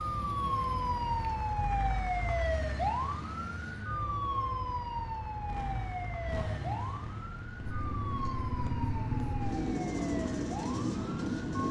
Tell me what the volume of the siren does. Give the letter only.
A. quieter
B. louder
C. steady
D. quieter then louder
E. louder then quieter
A.